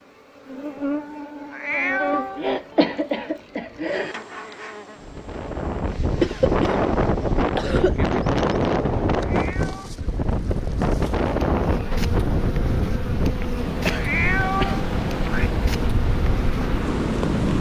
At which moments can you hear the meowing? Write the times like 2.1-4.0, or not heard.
1.5-2.5, 9.2-9.9, 13.9-15.5.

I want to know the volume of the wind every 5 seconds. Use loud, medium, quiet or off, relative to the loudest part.
off, loud, loud, loud.